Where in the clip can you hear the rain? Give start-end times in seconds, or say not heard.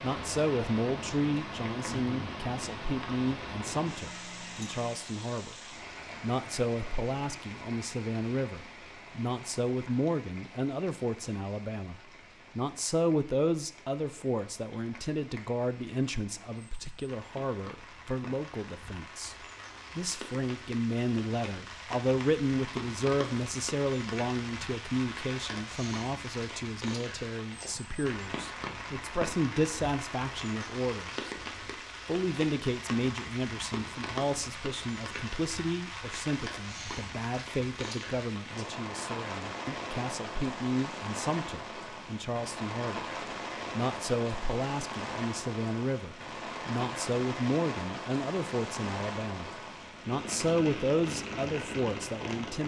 0.0-52.6.